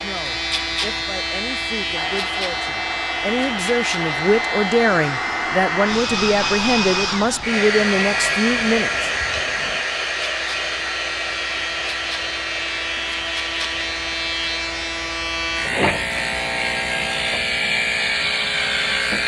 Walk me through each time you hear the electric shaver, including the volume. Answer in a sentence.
The electric shaver can be heard from 0.0 to 19.2 s, getting quieter then louder.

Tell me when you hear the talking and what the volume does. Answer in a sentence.
You can hear the talking from 0.0 to 9.1 s, getting louder.